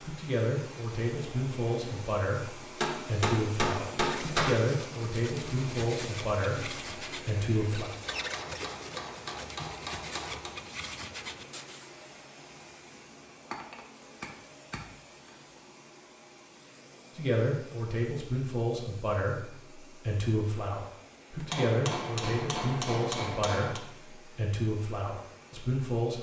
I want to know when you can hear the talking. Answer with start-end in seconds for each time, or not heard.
0.0-7.9, 17.1-26.1.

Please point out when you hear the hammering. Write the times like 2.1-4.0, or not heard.
2.8-4.7, 8.1-10.6, 13.5-14.8, 21.5-23.8.